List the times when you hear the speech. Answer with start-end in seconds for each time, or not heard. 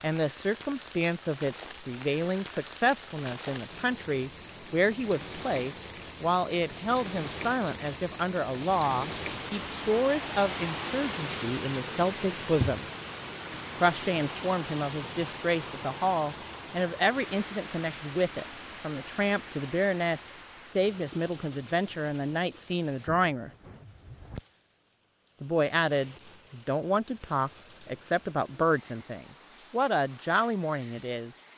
0.0-12.8, 13.8-23.5, 25.4-31.3.